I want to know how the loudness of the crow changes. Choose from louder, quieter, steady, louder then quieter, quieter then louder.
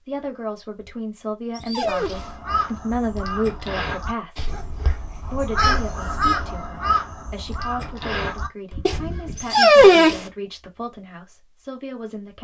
louder then quieter.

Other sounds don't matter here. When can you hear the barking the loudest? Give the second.
10 s.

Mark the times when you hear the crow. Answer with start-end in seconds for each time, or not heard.
1.9-9.4.